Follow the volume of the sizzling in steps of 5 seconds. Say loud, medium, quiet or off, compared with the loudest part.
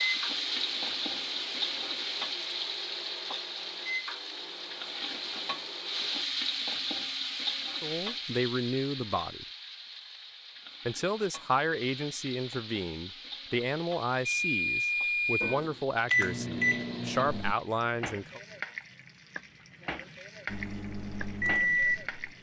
loud, loud, medium, medium, medium.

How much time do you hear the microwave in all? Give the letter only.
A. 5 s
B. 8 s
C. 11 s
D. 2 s
C.